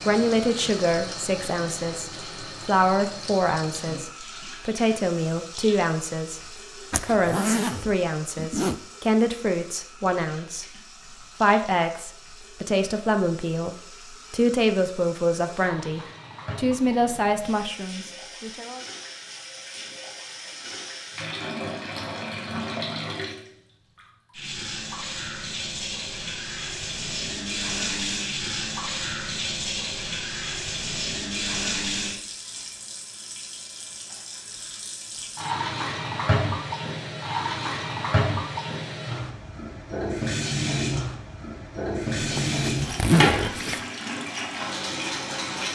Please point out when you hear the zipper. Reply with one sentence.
The zipper can be heard from 6.9 to 8.8 s and from 42.1 to 43.8 s.